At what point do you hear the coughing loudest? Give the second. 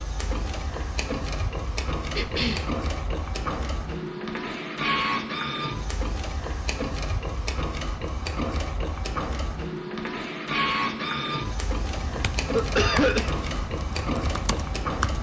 13 s.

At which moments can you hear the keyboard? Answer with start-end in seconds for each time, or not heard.
11.8-15.1.